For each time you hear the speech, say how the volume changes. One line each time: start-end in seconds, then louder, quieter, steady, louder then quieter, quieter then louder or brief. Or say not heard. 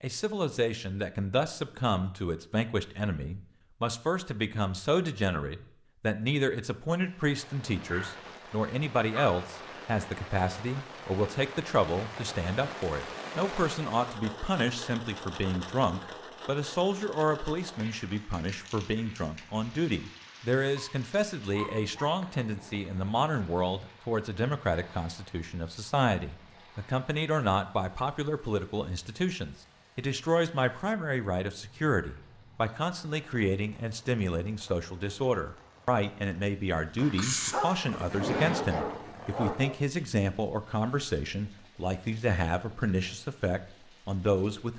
0.0-44.7 steady.